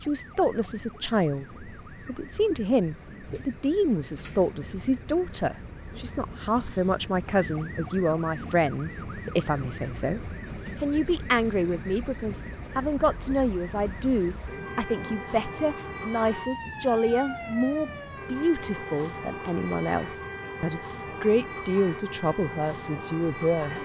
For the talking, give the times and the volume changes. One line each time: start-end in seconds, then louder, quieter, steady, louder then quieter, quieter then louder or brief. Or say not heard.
0.0-23.7 steady.